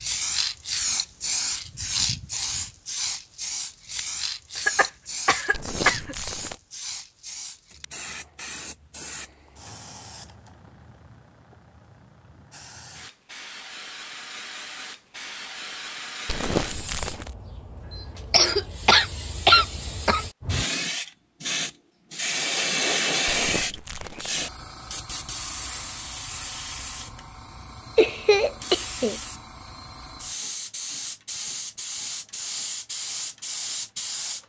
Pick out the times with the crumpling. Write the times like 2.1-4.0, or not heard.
5.5-6.6, 16.2-17.4, 23.2-24.5.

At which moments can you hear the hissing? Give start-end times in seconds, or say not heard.
0.0-34.4.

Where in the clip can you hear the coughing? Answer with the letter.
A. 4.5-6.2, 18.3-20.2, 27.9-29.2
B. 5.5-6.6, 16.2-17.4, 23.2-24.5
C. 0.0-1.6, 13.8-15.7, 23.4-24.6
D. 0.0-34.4
A.